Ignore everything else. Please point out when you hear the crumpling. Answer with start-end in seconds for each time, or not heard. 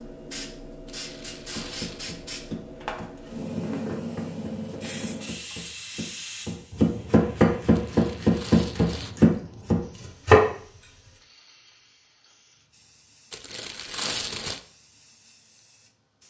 0.8-2.1, 7.8-9.2, 13.3-14.6.